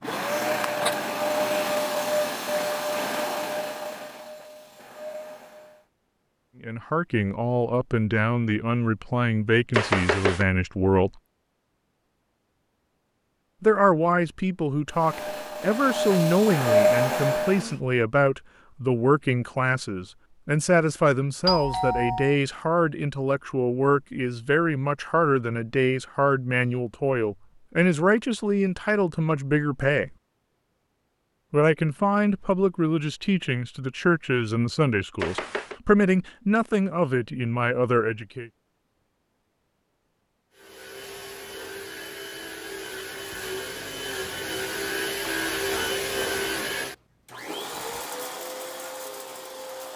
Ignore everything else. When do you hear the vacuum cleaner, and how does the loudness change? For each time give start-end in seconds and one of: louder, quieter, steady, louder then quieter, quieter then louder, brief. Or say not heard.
0.0-5.8 quieter
14.9-17.8 brief
40.5-49.9 louder then quieter.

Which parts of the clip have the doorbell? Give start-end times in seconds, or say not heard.
21.4-22.4.